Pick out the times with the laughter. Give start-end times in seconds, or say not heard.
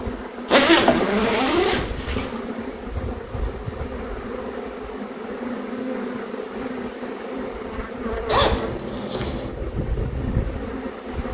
not heard.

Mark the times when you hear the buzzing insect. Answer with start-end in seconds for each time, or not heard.
0.0-11.2.